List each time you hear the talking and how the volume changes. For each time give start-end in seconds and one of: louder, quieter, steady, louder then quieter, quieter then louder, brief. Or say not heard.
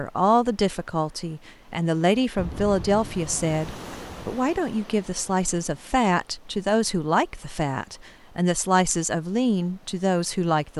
0.0-10.7 steady.